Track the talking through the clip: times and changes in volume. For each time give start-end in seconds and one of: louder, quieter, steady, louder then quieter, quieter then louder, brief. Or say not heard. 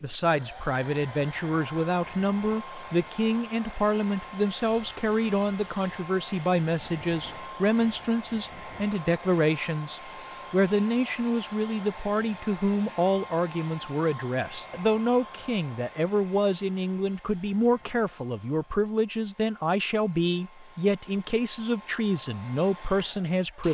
0.0-23.6 steady.